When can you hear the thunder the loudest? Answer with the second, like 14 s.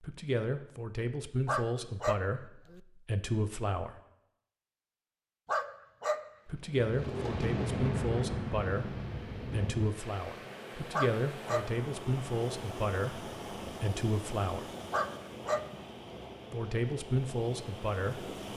8 s.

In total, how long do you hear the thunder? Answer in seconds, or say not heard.
3 s.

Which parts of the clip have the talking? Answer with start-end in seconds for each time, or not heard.
0.0-4.0, 6.5-14.7, 16.5-18.4.